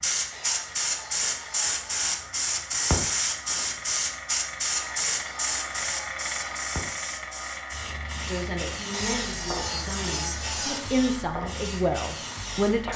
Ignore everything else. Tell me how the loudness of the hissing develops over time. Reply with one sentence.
The volume of the hissing goes down.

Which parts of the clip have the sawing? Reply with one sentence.
You can hear the sawing from 0.3 to 2.3 s, from 4.7 to 6.7 s and from 8.9 to 10.9 s.